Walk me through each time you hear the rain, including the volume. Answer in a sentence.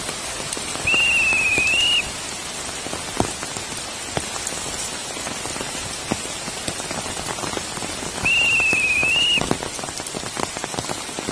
The rain can be heard from 0.0 to 11.2 s, at a steady volume.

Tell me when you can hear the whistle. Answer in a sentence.
The whistle can be heard from 0.8 to 2.1 s and from 8.2 to 9.4 s.